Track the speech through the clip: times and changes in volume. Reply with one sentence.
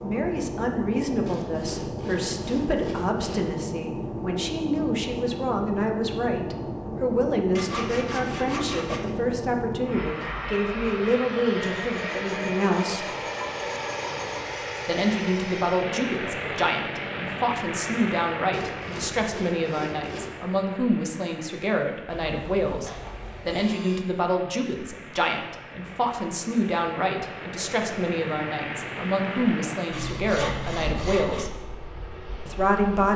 You can hear the speech from 0.0 to 13.1 s, at a steady volume; from 14.8 to 31.6 s, at a steady volume; and briefly from 32.5 to 33.1 s.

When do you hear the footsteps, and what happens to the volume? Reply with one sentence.
The footsteps can't be heard in this clip.